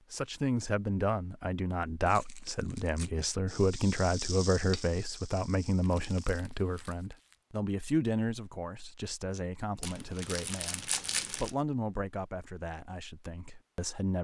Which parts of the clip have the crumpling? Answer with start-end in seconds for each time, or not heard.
2.0-3.1, 5.8-7.3, 9.8-11.6.